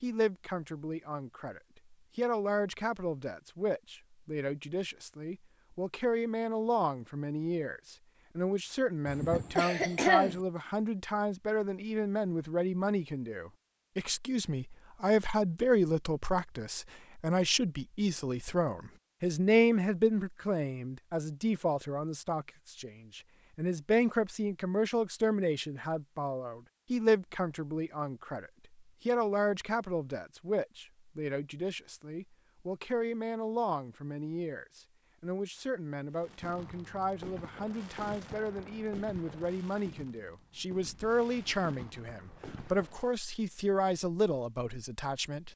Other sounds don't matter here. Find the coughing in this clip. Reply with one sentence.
The coughing can be heard from 9.1 to 10.4 s.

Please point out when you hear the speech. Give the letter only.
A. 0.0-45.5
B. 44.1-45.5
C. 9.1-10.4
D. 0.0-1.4
A.